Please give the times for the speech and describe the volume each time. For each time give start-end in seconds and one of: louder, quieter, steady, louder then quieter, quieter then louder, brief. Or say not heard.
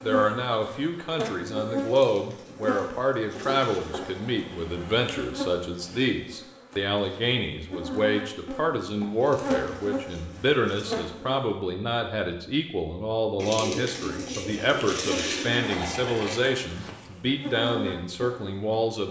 0.0-19.0 steady.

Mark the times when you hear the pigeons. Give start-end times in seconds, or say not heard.
1.8-4.7, 9.2-10.9, 13.3-16.4.